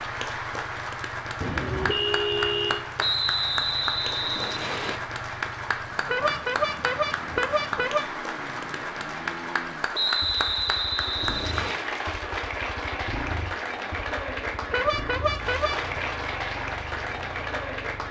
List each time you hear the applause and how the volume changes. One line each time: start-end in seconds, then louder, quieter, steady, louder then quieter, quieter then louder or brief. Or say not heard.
0.0-18.0 steady.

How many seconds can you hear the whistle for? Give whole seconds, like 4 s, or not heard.
4 s.